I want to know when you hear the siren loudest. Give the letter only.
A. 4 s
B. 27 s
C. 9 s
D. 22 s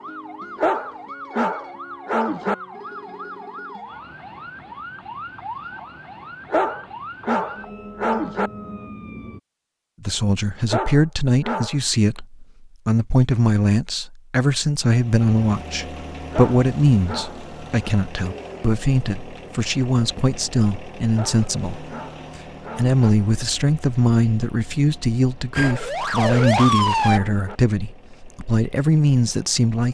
B.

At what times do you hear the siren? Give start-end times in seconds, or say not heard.
0.0-9.4, 25.6-27.2.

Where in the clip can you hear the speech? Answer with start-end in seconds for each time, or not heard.
10.0-29.9.